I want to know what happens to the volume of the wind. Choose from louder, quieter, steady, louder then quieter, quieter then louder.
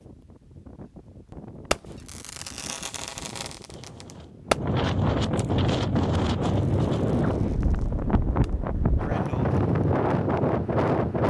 louder.